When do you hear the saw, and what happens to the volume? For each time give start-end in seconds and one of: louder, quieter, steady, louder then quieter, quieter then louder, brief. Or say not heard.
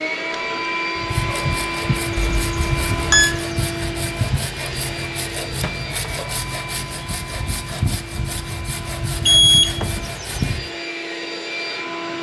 0.9-10.7 steady.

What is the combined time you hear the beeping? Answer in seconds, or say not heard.
2 s.